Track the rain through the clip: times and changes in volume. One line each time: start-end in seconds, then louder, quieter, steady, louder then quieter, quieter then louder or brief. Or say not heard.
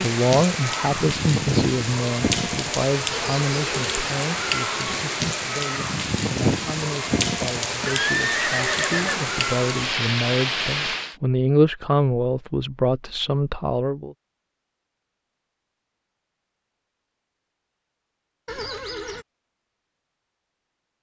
0.0-11.2 steady.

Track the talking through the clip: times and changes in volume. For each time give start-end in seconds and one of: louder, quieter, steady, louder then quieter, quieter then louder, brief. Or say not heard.
0.0-14.2 quieter then louder.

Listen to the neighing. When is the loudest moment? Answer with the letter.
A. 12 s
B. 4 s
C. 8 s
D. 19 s
C.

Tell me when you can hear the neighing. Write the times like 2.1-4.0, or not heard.
3.1-3.8, 7.8-9.2, 18.4-19.2.